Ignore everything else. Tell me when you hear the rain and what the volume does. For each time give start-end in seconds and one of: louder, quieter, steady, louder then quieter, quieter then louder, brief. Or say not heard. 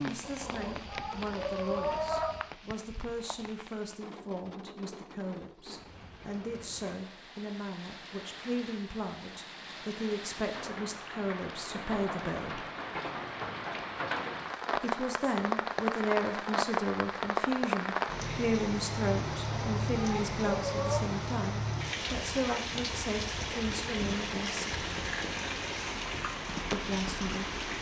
0.0-27.7 louder.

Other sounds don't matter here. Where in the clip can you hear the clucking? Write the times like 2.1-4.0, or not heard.
0.2-2.4, 19.3-21.1.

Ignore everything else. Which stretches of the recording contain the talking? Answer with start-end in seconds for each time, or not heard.
0.0-12.7, 14.8-24.6, 26.7-27.6.